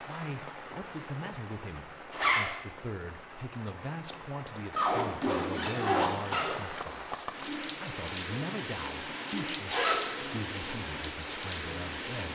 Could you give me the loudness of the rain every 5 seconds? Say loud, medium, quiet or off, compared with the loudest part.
medium, loud, loud.